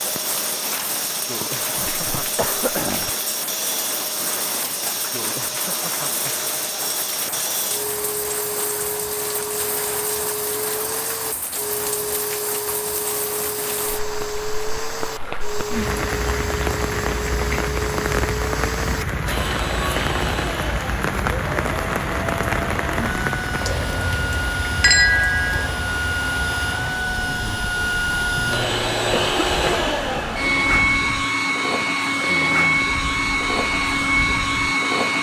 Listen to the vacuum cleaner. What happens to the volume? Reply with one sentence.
The volume of the vacuum cleaner goes up.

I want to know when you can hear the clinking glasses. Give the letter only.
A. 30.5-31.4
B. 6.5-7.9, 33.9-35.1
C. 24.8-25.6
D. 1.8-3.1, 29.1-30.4
C.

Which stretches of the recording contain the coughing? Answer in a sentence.
You can hear the coughing from 1.8 to 3.1 s and from 29.1 to 30.4 s.